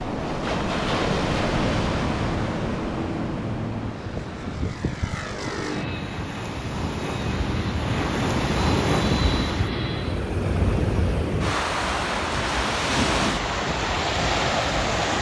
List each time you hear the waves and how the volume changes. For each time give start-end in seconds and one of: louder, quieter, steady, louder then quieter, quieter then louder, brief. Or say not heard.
0.0-15.1 quieter then louder.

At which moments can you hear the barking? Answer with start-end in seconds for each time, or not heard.
not heard.